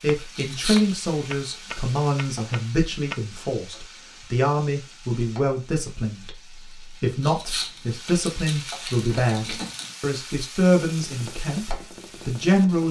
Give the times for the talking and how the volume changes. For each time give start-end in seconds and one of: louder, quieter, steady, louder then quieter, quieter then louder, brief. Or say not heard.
0.0-12.8 steady.